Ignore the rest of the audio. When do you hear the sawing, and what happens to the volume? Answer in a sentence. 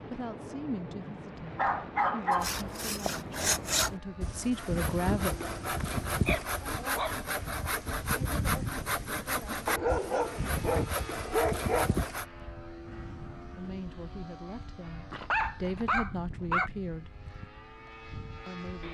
You can hear the sawing from 2.3 to 12.2 s, at a steady volume.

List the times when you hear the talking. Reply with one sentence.
You can hear the talking from 0.0 to 5.3 s, from 13.6 to 17.1 s and from 18.4 to 18.9 s.